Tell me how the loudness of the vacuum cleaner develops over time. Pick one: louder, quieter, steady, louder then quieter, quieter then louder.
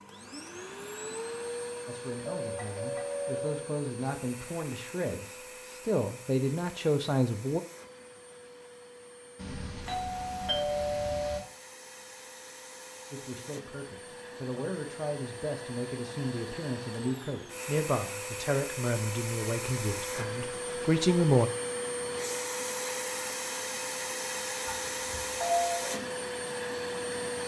quieter then louder.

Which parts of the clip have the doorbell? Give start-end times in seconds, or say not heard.
2.2-3.6, 9.3-11.4, 24.6-25.9.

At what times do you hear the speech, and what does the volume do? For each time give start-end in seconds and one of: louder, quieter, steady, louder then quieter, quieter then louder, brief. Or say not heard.
1.9-7.6 louder
13.1-21.5 louder.